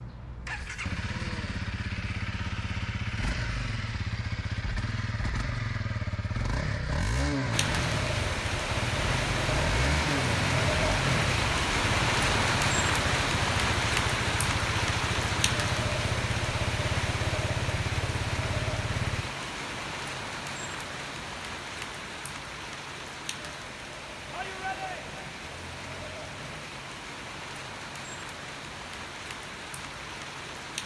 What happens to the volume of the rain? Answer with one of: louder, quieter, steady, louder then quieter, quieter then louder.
quieter.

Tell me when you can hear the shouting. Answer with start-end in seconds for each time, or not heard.
24.3-25.3.